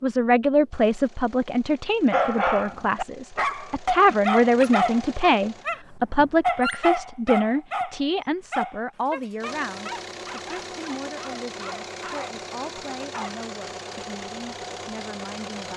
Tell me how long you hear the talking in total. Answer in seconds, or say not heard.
16 s.